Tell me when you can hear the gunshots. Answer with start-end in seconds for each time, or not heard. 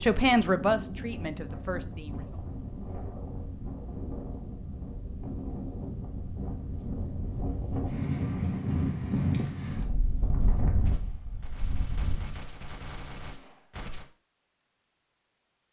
10.4-14.1.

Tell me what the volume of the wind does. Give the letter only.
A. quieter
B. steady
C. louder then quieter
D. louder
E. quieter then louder
C.